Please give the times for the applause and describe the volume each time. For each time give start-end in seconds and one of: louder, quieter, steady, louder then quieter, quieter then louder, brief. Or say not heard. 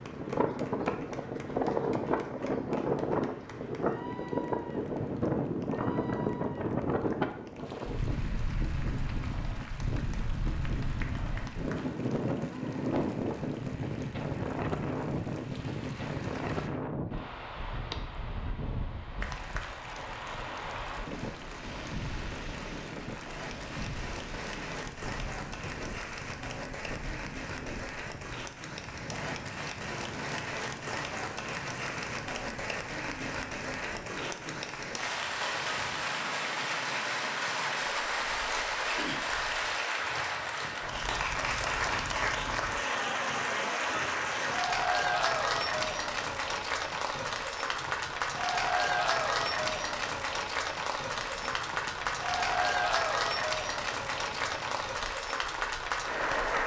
0.0-16.7 steady
19.2-56.6 louder.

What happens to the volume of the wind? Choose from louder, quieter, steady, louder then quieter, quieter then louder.
quieter.